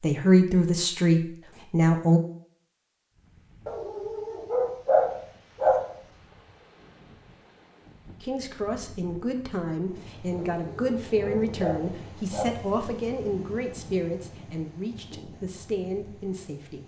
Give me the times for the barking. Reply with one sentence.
You can hear the barking from 3.6 to 6.0 s and from 10.3 to 12.7 s.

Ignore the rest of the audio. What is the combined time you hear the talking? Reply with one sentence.
You can hear the talking for 11 seconds altogether.